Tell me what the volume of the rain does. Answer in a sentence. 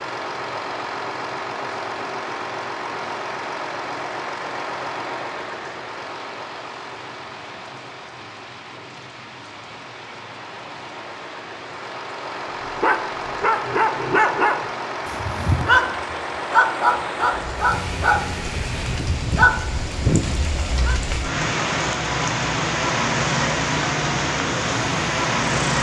The loudness of the rain goes up.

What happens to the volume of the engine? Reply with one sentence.
The loudness of the engine goes down, then up.